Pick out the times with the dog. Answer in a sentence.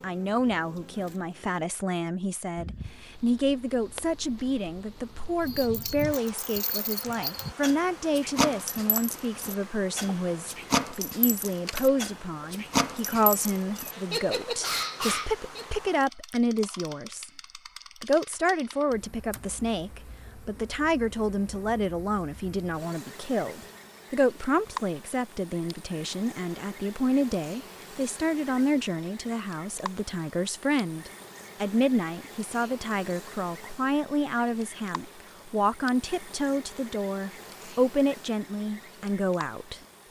The dog can be heard from 5.4 to 15.7 s.